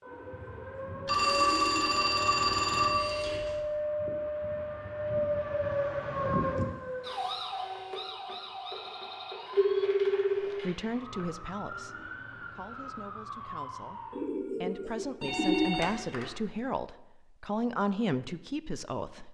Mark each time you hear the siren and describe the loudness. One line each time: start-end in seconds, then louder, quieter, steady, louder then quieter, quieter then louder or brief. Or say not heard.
0.0-14.2 louder then quieter.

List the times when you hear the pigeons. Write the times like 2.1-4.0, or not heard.
0.0-2.0, 14.1-15.8.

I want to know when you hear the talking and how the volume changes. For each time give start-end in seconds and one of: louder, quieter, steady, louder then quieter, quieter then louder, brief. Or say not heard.
10.6-19.2 quieter then louder.